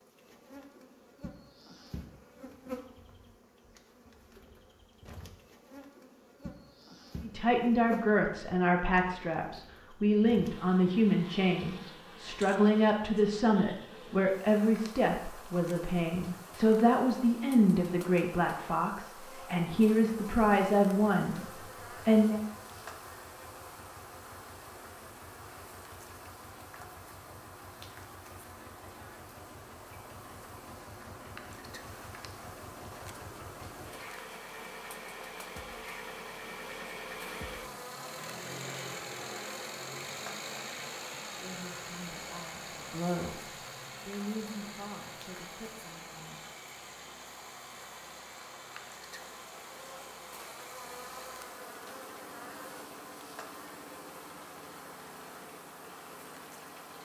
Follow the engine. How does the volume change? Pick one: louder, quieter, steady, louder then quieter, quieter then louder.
louder then quieter.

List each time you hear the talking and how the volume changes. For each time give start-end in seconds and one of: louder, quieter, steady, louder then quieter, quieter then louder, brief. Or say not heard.
7.2-22.4 steady
41.4-46.4 louder then quieter.